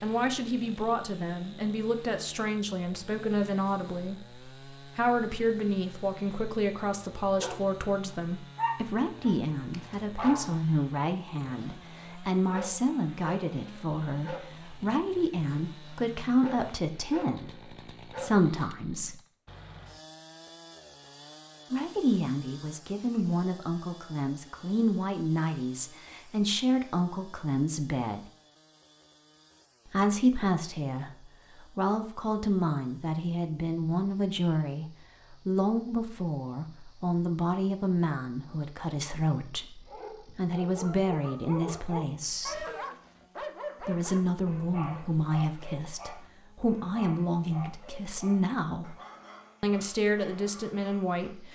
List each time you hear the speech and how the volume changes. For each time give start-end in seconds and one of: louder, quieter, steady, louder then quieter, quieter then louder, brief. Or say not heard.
0.0-19.1 steady
21.7-28.3 steady
29.9-42.6 steady
43.8-49.0 steady
49.6-51.5 brief.